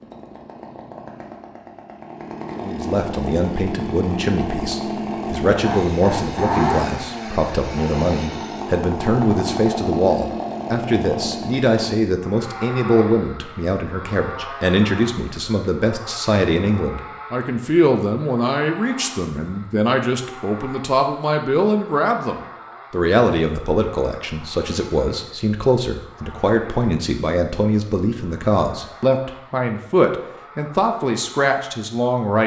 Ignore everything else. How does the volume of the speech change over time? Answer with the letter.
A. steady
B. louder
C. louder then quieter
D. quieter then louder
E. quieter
A.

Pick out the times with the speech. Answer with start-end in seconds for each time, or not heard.
2.5-32.4.